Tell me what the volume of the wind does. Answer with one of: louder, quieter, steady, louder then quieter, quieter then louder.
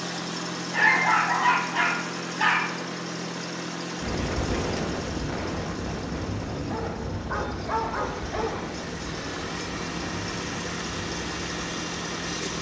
quieter.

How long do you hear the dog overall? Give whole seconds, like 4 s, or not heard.
4 s.